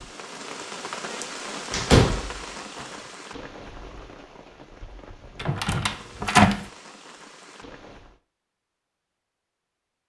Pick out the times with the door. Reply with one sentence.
You can hear the door from 1.7 to 2.3 s and from 5.4 to 6.7 s.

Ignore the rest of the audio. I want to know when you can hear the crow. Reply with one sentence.
You can't hear the crow here.